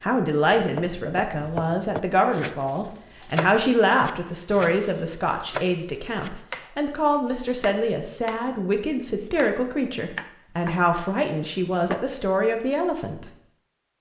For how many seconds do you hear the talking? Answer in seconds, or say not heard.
13 s.